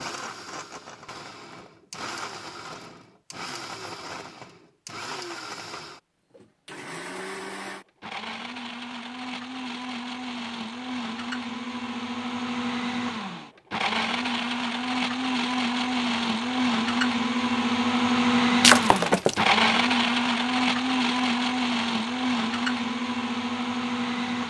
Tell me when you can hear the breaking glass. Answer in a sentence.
You can hear the breaking glass from 18.6 to 19.4 s.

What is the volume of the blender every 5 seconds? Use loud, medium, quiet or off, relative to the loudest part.
quiet, quiet, medium, loud, loud.